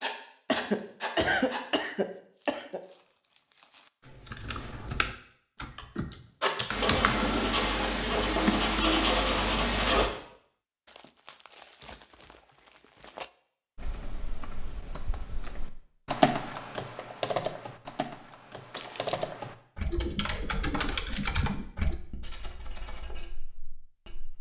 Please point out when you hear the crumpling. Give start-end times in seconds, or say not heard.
1.9-3.9, 10.8-13.3, 18.7-19.4.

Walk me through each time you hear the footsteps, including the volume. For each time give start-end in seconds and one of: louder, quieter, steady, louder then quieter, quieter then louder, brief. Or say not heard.
not heard.